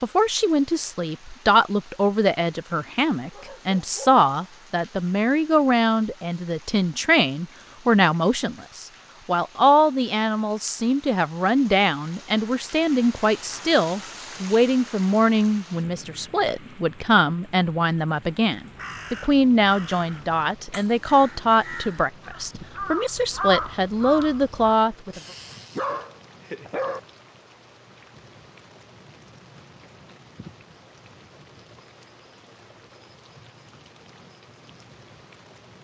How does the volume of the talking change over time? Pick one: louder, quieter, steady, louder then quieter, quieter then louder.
steady.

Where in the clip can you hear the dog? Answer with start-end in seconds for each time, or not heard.
3.3-4.2, 25.1-27.0.